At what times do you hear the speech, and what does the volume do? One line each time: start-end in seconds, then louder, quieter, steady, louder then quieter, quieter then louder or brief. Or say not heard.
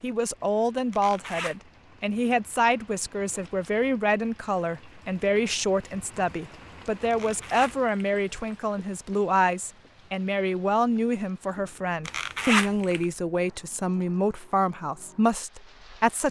0.0-16.2 steady.